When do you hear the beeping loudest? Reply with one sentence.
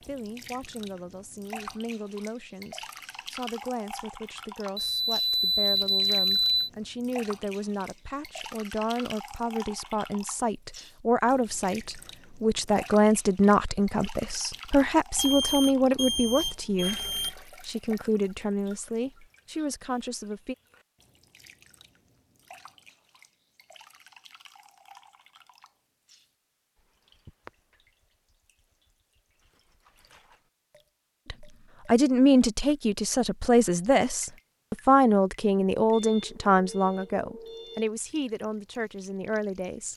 The volume of the beeping peaks at 6 seconds.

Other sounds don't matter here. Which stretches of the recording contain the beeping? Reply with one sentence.
You can hear the beeping from 4.8 to 6.7 s, from 15.2 to 17.4 s and from 35.9 to 37.9 s.